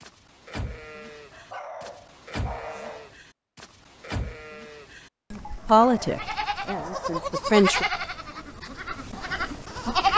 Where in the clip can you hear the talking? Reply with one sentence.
You can hear the talking from 5.7 to 7.8 s.